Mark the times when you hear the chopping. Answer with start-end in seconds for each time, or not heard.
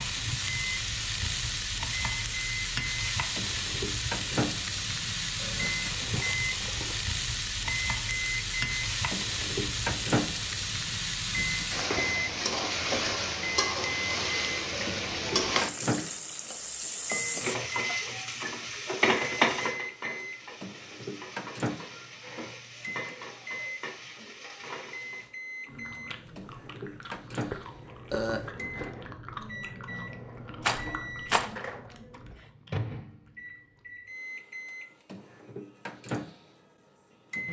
not heard.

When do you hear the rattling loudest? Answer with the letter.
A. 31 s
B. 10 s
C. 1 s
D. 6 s
A.